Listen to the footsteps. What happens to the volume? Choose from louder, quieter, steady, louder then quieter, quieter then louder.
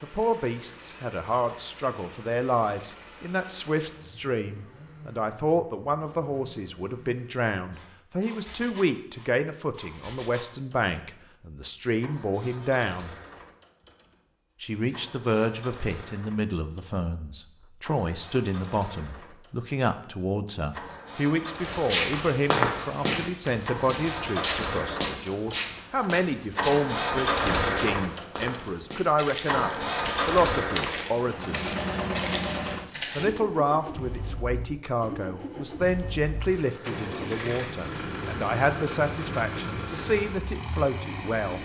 quieter.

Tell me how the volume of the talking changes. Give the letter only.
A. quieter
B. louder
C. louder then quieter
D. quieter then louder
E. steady
E.